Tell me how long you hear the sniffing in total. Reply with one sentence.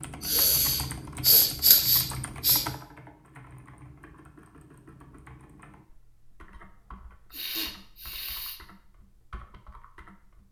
You can hear the sniffing for 4 seconds altogether.